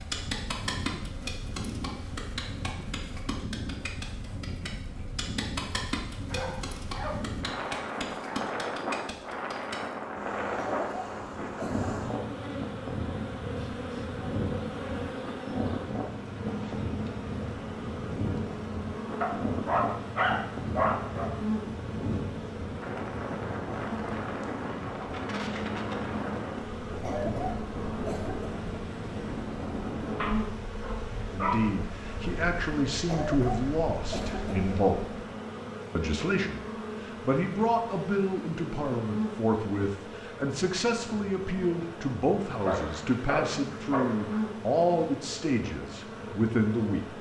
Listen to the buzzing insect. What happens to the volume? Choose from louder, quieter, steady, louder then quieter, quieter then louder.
steady.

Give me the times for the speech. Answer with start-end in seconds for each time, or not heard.
31.3-35.0, 36.0-47.0.